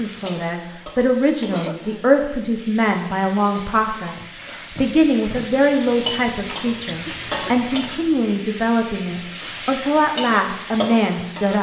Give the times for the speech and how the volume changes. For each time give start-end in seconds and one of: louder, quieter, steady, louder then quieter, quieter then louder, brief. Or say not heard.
0.0-11.5 steady.